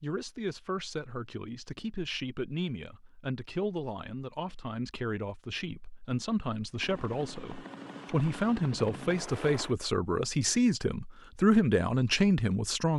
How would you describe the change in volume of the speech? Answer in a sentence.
The volume of the speech goes up.